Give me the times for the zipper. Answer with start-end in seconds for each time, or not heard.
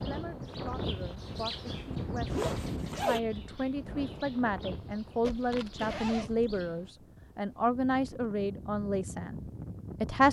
2.3-3.2, 5.2-6.5.